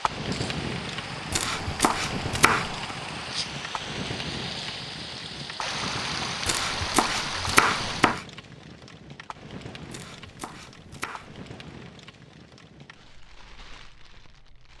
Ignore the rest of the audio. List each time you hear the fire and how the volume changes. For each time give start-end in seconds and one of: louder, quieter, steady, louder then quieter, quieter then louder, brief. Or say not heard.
0.0-14.7 quieter.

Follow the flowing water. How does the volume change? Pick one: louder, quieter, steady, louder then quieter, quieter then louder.
louder.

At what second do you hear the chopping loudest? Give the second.
8 s.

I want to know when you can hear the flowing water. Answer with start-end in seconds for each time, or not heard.
0.0-8.2.